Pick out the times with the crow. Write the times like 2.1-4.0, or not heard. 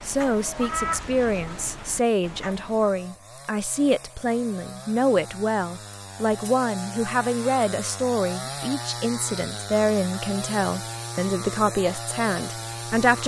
0.0-3.0.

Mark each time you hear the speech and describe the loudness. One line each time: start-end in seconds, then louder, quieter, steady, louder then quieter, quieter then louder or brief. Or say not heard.
0.0-13.2 steady.